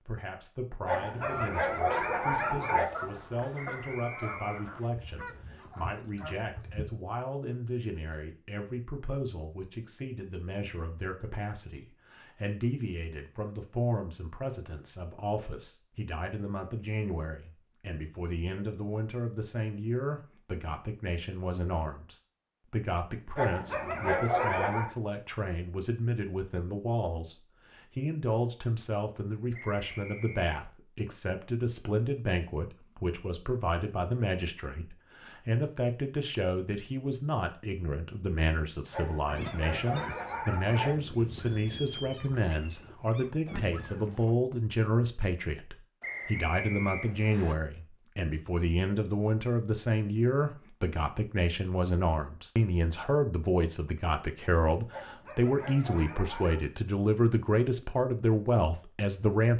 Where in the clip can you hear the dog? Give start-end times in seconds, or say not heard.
0.8-2.9, 23.4-24.9, 38.9-41.0, 54.9-56.6.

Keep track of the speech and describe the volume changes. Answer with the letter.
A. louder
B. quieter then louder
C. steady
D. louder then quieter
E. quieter
A.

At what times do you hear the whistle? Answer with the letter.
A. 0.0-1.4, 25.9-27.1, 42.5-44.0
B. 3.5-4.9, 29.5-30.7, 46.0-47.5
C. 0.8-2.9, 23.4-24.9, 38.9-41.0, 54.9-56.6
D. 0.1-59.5
B.